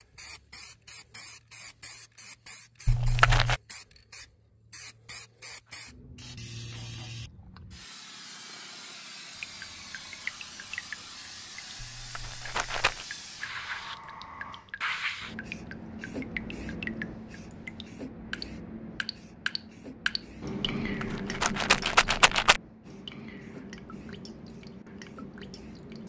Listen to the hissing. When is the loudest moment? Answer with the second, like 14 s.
15 s.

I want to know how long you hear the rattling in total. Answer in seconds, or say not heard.
4 s.